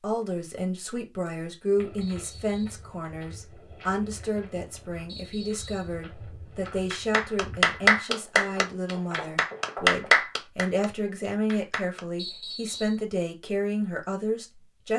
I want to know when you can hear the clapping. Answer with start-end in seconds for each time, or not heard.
6.9-12.0.